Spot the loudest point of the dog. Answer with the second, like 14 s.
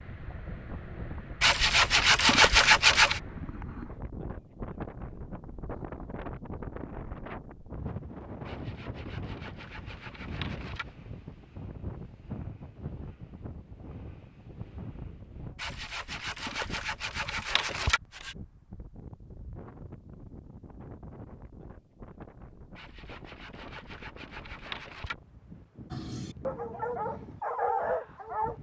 28 s.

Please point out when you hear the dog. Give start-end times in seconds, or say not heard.
25.9-28.5.